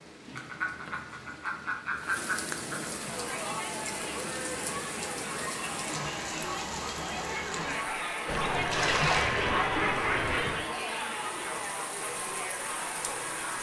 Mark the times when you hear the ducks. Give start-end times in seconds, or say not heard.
0.3-2.9, 8.2-10.7.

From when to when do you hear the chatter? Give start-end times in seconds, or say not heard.
2.9-13.5.